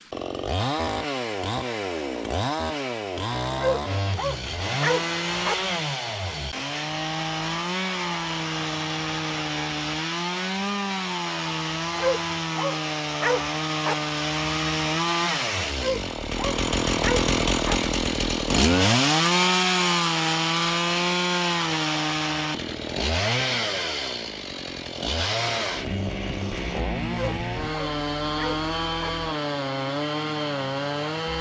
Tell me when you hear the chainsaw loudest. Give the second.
19 s.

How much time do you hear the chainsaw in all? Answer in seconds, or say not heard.
31 s.